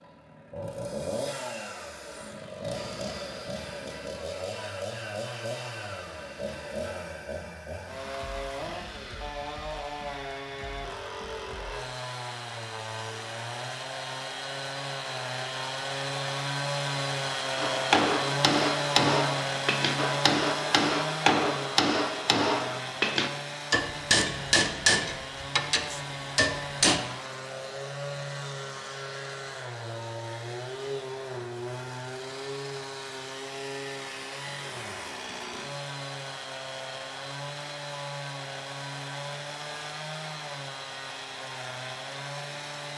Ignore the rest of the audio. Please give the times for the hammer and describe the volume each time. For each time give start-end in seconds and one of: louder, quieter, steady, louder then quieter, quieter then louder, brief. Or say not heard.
17.6-27.0 steady.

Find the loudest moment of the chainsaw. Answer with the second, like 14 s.
19 s.